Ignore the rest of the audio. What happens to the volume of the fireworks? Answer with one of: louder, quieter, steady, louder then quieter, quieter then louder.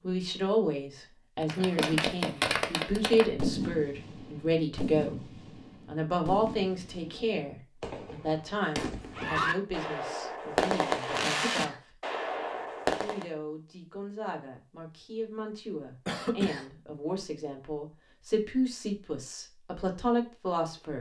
quieter then louder.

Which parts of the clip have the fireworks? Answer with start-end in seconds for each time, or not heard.
1.4-13.2.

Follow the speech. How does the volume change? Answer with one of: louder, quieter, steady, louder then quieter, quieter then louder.
quieter then louder.